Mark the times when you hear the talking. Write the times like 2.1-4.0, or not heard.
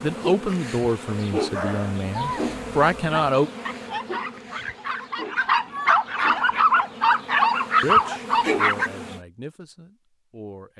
0.0-3.5, 7.8-10.7.